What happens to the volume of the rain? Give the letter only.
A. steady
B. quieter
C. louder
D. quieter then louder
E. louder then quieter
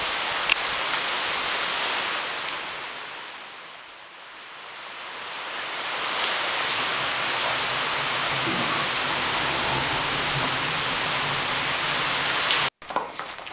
D.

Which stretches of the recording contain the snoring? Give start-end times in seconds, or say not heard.
8.4-10.5.